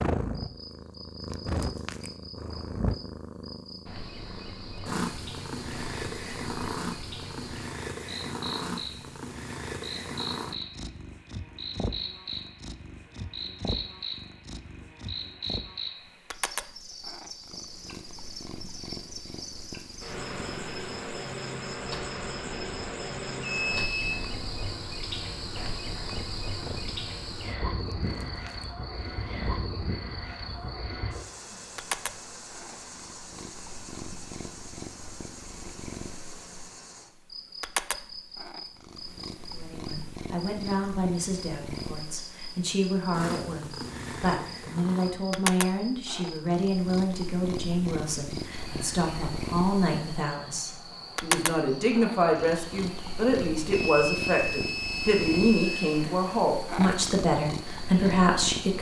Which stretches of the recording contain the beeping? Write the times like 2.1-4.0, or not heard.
23.4-24.2, 53.7-56.0.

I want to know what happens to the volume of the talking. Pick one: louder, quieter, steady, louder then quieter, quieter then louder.
louder.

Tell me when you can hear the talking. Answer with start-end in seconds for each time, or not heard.
39.5-58.7.